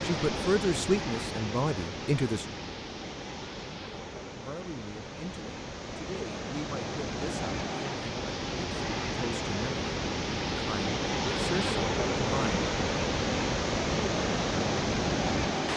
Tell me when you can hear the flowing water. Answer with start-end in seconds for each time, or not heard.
0.0-15.7.